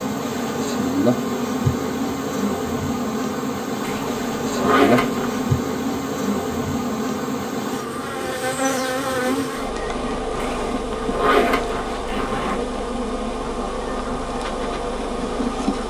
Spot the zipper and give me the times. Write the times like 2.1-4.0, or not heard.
3.8-5.4, 10.3-12.6.